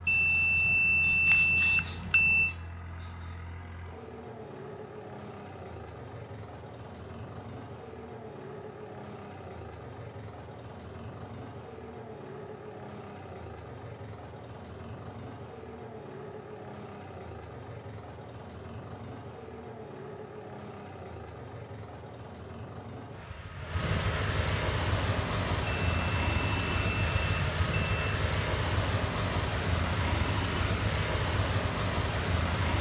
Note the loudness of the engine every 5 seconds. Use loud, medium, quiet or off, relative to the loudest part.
quiet, quiet, quiet, quiet, medium, loud, loud.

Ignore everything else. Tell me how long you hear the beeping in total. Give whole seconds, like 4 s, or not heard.
5 s.